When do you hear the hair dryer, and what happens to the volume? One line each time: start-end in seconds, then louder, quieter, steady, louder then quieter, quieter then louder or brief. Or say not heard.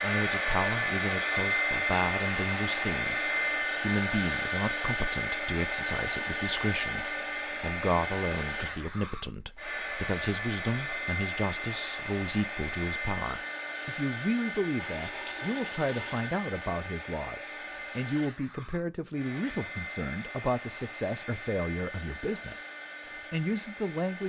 0.0-24.2 quieter.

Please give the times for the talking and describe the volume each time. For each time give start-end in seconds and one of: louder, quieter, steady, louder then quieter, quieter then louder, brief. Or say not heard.
0.0-22.6 steady
23.3-24.2 brief.